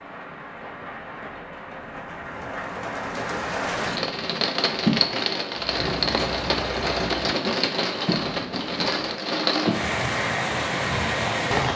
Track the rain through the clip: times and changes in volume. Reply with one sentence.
The rain can be heard from 0.0 to 11.7 s, getting louder.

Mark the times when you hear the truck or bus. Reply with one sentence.
The truck or bus can be heard from 5.5 to 7.3 s.